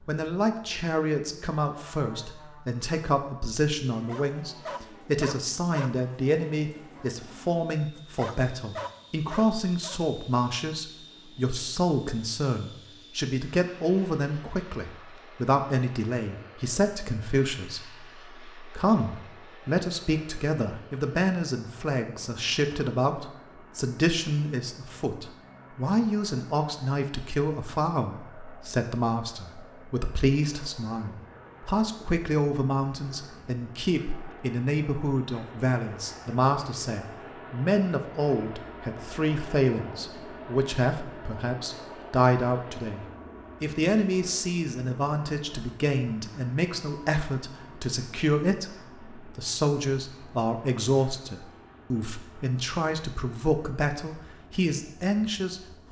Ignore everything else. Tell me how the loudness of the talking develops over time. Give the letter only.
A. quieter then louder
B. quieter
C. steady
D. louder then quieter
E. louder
C.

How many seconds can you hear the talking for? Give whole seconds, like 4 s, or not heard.
56 s.